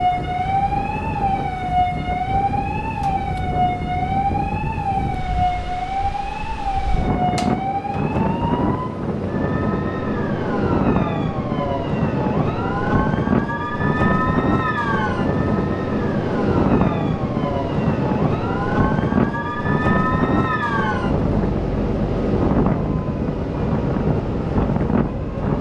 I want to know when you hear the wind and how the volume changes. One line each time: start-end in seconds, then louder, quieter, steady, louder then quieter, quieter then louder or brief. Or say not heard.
0.0-25.5 louder.